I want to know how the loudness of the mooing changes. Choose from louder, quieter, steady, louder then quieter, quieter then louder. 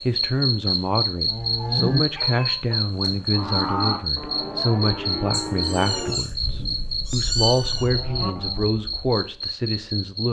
quieter.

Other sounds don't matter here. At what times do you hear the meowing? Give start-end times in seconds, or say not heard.
1.6-2.5, 5.3-7.8.